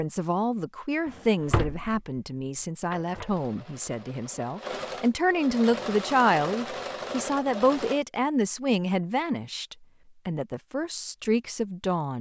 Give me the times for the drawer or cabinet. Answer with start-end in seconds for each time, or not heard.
1.1-2.0, 2.9-3.4.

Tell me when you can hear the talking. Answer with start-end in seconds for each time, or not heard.
0.0-12.1.